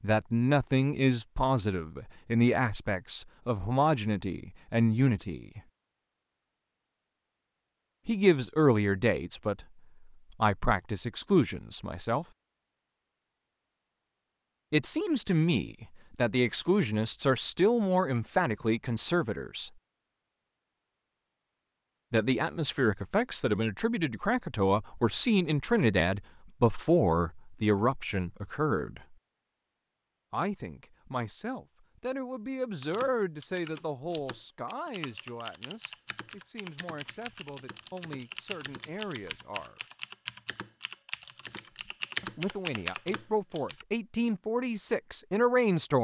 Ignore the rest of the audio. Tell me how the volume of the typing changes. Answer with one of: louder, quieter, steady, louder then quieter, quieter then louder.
louder.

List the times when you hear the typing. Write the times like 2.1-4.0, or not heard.
32.8-43.9.